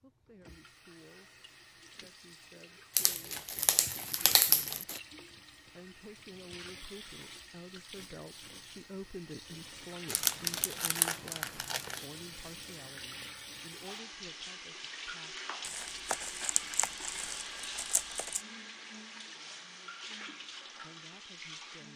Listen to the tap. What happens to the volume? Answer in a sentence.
The loudness of the tap goes up.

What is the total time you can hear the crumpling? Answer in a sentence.
You can hear the crumpling for 7 seconds altogether.